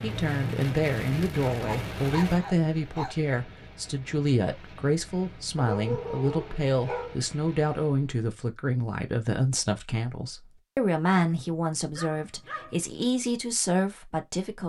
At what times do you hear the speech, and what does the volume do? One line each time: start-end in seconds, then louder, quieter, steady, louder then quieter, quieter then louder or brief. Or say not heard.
0.0-14.6 steady.